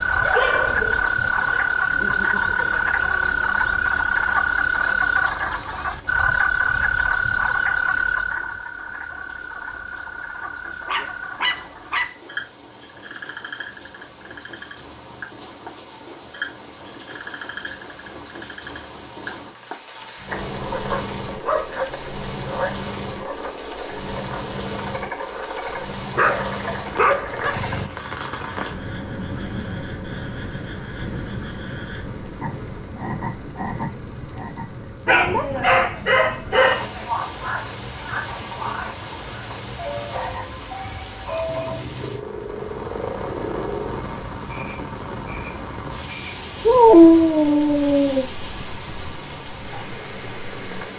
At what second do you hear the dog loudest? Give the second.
47 s.